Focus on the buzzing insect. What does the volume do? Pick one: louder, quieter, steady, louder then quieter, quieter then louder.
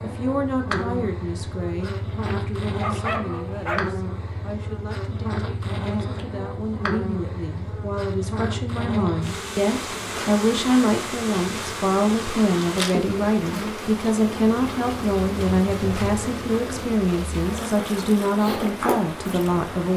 steady.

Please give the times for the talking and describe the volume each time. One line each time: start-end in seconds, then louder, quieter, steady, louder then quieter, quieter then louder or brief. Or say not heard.
0.0-19.9 louder.